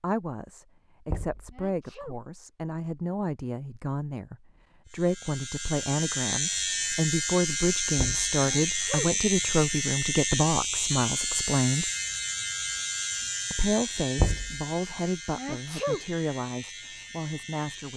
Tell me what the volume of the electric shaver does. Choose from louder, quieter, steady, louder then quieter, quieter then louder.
quieter.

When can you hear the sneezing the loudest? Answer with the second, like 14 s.
16 s.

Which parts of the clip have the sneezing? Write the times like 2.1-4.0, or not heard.
1.5-2.1, 8.4-9.1, 15.3-16.0.